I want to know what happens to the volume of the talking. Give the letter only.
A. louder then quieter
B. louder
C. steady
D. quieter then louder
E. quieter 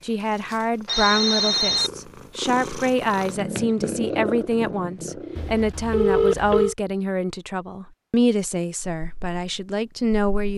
C.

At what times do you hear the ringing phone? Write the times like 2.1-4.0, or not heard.
0.8-1.9, 5.3-6.8.